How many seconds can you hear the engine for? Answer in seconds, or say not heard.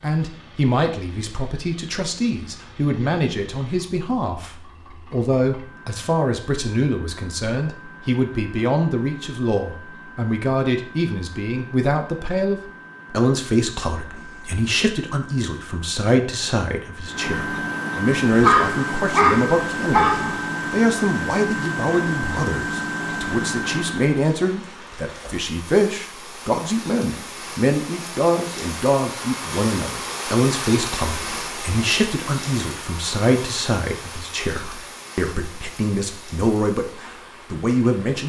24 s.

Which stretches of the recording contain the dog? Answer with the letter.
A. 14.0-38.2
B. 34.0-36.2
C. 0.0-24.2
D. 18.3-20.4
D.